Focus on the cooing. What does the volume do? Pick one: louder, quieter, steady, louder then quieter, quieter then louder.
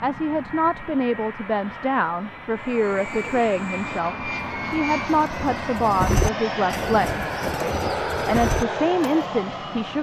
louder then quieter.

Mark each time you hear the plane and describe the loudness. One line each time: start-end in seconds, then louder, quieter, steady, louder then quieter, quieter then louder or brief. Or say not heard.
0.0-9.9 louder.